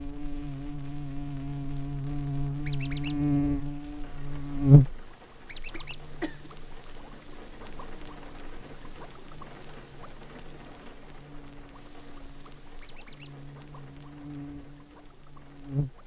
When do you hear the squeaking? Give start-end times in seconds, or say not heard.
2.6-3.2, 5.5-6.0, 12.8-13.3.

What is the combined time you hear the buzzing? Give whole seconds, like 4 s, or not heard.
16 s.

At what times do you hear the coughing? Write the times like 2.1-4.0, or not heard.
5.7-6.5.